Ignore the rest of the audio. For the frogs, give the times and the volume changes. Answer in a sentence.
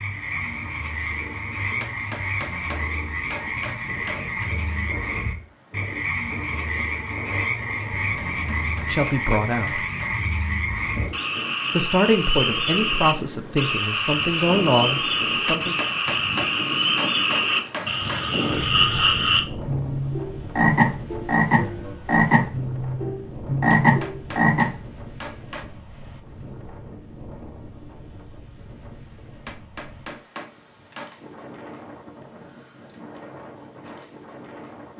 You can hear the frogs from 0.0 to 24.7 s, getting louder.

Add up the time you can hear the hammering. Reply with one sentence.
You can hear the hammering for 11 seconds altogether.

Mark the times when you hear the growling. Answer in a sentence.
The growling can't be heard in this clip.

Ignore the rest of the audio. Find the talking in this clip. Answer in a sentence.
You can hear the talking from 8.4 to 9.8 s and from 11.8 to 15.8 s.